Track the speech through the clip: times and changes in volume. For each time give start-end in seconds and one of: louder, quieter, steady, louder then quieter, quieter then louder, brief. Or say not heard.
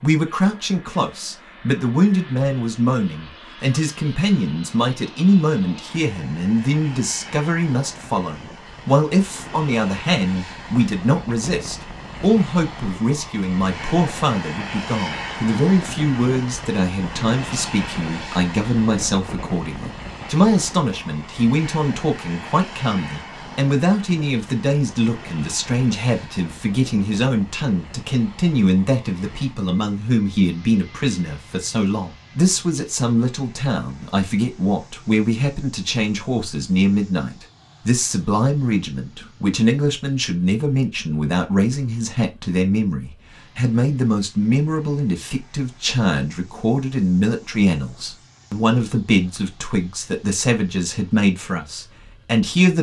0.0-52.7 steady.